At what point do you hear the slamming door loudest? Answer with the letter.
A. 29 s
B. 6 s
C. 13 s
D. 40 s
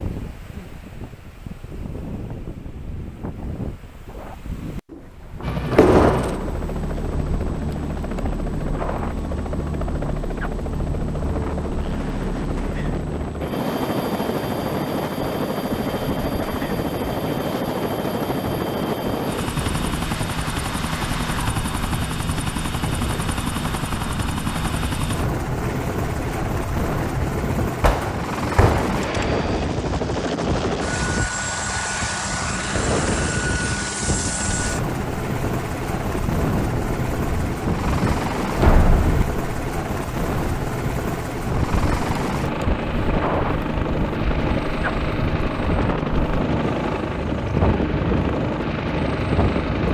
B.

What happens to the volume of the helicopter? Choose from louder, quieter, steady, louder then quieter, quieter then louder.
steady.